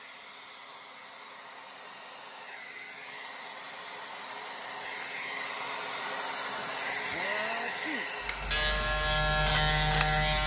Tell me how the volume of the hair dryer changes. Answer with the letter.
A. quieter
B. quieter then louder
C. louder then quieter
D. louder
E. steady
D.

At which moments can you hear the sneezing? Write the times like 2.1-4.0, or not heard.
6.5-8.1.